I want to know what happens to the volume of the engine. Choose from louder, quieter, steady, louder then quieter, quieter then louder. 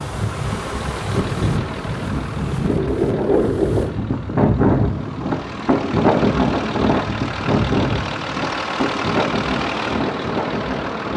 quieter then louder.